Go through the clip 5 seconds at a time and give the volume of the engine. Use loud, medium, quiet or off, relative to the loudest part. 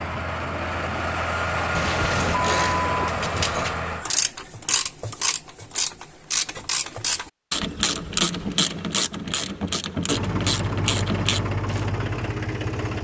loud, off, loud.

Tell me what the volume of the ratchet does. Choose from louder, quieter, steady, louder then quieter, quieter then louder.
steady.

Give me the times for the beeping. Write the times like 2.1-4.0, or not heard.
1.7-3.8.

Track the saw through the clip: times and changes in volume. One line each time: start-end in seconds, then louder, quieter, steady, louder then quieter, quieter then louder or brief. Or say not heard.
not heard.